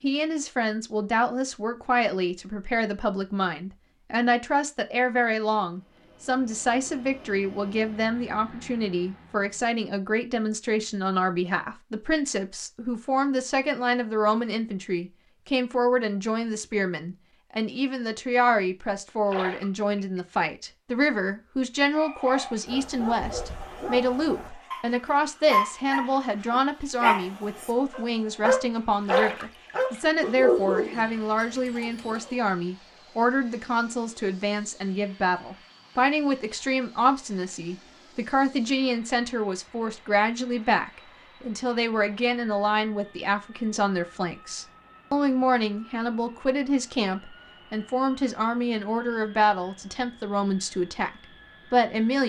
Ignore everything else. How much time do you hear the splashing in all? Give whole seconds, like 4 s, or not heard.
2 s.